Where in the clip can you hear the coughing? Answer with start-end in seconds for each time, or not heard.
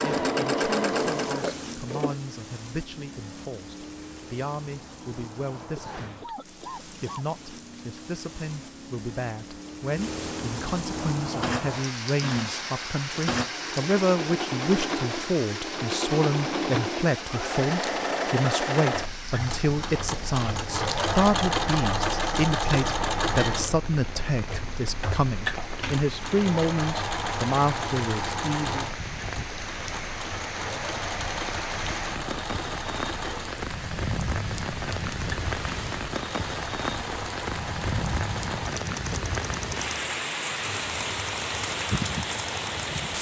5.8-7.2.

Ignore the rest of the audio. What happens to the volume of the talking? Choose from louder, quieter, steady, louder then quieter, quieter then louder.
louder.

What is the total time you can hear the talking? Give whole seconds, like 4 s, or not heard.
29 s.